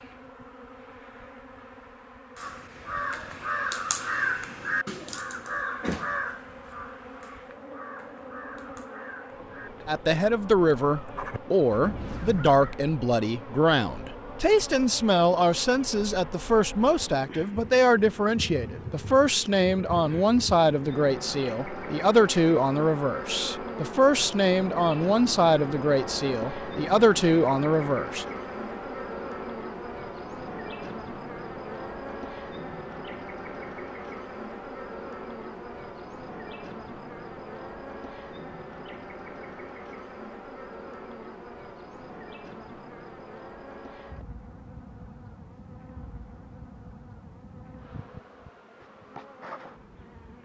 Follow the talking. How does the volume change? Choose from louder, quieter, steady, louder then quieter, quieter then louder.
steady.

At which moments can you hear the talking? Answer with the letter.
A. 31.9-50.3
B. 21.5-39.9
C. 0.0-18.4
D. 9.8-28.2
D.